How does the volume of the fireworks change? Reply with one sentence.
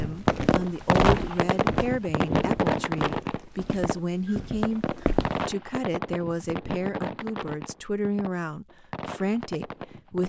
The loudness of the fireworks goes down.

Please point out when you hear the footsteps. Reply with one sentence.
The footsteps can be heard from 0.0 to 5.4 s.